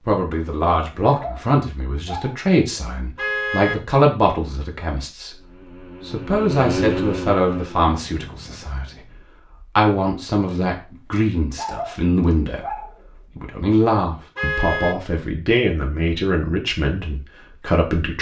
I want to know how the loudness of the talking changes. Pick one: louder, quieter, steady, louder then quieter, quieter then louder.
steady.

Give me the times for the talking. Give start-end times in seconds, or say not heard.
0.0-18.1.